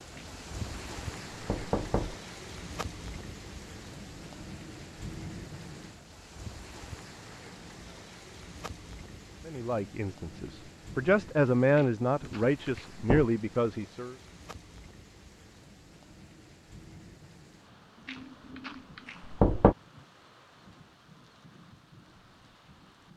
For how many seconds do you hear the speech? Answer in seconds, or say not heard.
5 s.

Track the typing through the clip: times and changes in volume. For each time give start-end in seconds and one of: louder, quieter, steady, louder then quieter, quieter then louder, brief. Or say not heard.
not heard.